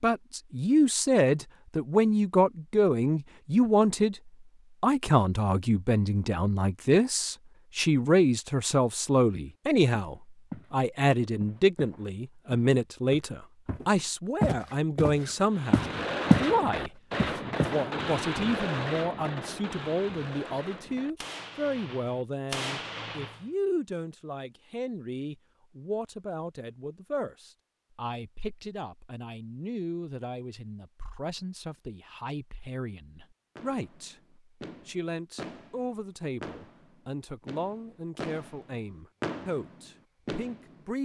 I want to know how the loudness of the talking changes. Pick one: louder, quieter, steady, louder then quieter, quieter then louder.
quieter.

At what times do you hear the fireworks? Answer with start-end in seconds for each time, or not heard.
15.5-23.4, 33.5-41.0.